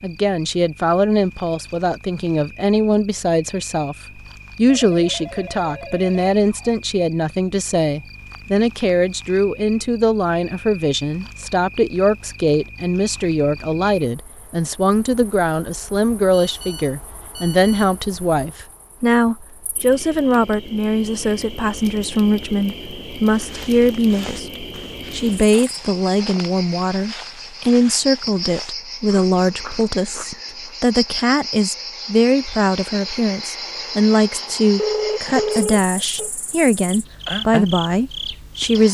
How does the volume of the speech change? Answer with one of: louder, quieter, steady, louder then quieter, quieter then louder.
steady.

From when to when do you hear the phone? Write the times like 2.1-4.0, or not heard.
4.7-6.7, 16.3-17.9, 34.8-36.3.